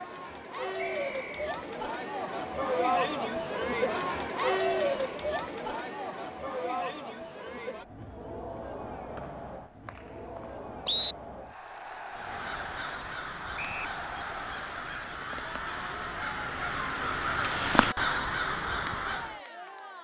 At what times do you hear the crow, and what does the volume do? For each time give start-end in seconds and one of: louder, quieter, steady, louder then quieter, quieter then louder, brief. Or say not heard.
12.1-19.4 louder.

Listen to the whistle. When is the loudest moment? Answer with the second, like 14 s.
11 s.